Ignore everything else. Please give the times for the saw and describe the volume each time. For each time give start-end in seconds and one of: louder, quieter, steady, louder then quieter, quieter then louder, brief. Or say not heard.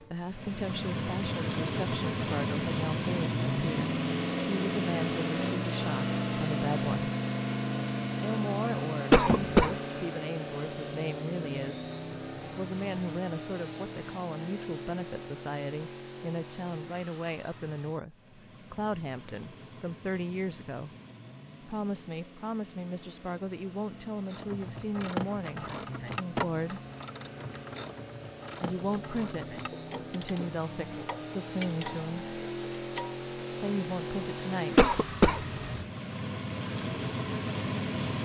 not heard.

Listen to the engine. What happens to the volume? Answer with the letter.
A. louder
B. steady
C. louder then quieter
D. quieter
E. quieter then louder
E.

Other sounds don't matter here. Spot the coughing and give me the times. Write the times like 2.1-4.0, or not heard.
9.1-9.8, 34.8-35.6.